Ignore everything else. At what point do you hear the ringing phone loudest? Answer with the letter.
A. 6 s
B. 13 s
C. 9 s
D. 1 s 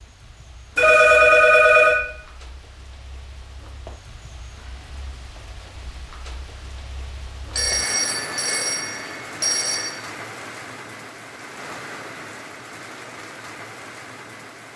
D.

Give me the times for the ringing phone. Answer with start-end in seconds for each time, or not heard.
0.8-2.0, 7.5-10.0.